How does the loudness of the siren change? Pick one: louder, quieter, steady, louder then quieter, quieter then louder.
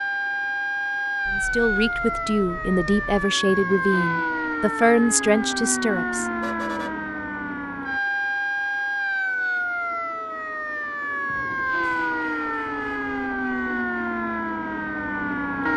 steady.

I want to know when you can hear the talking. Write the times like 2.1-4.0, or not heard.
1.3-6.2.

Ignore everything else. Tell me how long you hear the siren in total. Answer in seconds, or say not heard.
16 s.